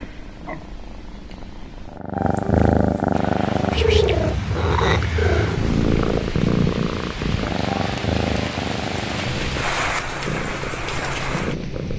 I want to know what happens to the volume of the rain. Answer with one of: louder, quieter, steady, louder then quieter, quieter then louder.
louder.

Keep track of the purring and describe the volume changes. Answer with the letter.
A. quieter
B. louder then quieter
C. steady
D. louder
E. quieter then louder
B.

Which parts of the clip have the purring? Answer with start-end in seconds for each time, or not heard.
0.0-11.9.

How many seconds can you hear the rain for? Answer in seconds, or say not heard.
9 s.